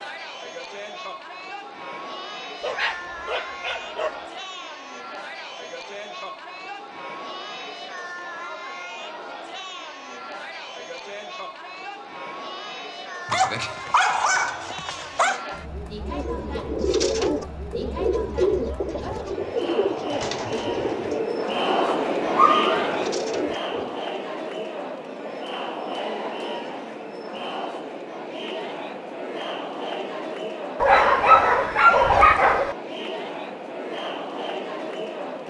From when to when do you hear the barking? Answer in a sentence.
The barking can be heard from 2.6 to 4.2 s, from 13.2 to 15.4 s, from 21.8 to 23.0 s and from 30.8 to 32.8 s.